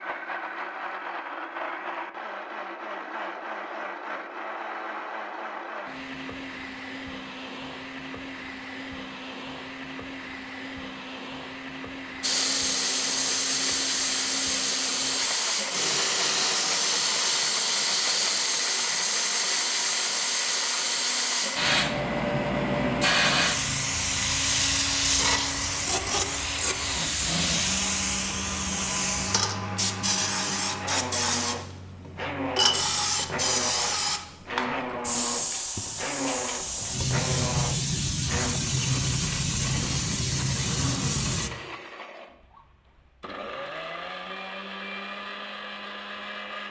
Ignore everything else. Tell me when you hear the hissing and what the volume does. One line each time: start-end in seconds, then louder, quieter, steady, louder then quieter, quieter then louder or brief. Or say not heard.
12.2-41.5 steady.